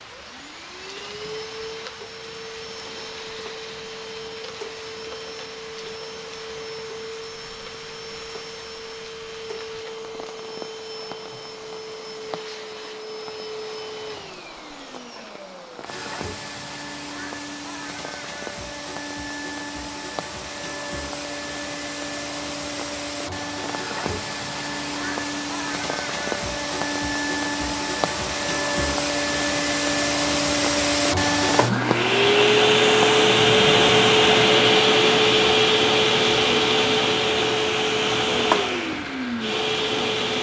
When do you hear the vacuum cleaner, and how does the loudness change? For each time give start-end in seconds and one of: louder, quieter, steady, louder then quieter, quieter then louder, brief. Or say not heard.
0.0-40.3 louder.